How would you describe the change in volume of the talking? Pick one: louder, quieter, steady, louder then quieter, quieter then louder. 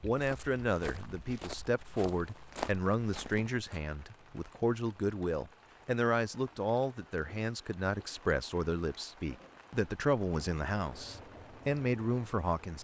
steady.